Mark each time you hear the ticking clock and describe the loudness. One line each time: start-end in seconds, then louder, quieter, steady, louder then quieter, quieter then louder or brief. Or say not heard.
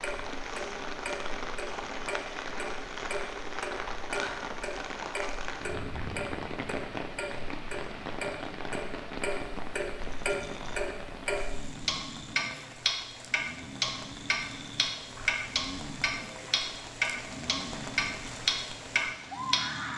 0.0-19.6 louder.